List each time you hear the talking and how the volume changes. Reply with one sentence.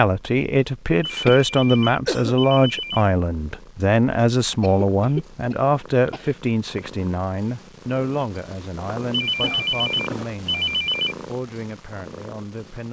You can hear the talking from 0.0 to 12.8 s, getting quieter.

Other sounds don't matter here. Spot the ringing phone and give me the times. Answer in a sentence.
You can hear the ringing phone from 1.0 to 3.0 s and from 9.1 to 11.2 s.